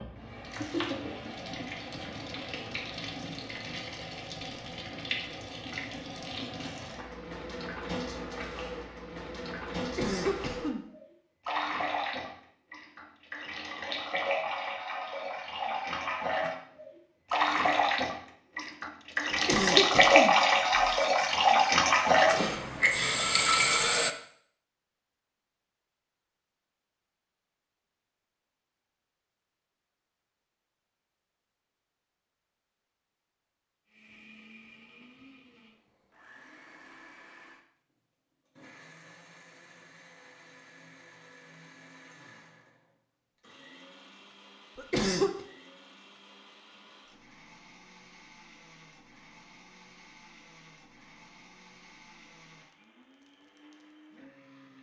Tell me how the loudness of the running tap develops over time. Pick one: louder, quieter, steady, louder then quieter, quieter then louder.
louder.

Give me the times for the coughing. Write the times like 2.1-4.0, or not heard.
9.8-10.8, 19.3-20.9, 44.8-45.3.